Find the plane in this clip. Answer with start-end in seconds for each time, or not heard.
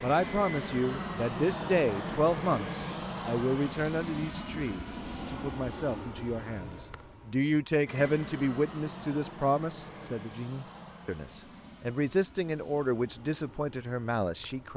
0.0-14.7.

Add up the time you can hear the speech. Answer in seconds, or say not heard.
15 s.